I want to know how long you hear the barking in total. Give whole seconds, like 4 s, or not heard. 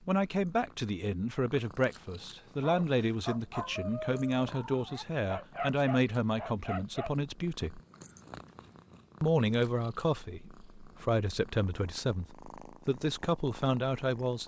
5 s.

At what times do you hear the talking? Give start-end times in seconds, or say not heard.
0.1-7.8, 9.2-14.4.